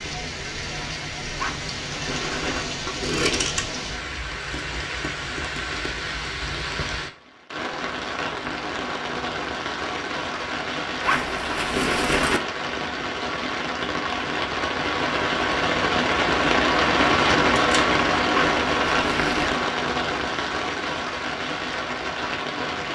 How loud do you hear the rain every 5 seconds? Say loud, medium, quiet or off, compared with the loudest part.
medium, medium, medium, loud, medium.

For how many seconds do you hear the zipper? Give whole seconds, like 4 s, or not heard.
4 s.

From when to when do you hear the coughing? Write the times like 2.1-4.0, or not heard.
not heard.